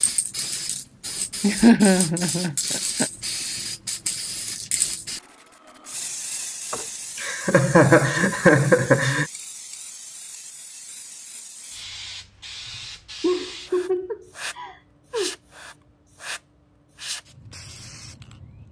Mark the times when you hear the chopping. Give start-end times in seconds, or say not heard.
not heard.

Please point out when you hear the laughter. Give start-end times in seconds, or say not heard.
1.4-3.0, 6.7-9.2, 13.2-15.3.